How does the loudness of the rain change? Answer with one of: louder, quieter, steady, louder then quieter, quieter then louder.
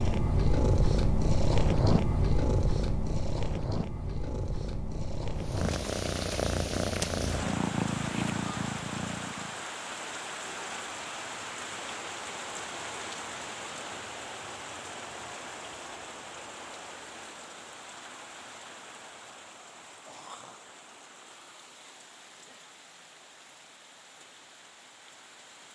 quieter.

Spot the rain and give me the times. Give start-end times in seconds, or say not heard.
5.3-25.6.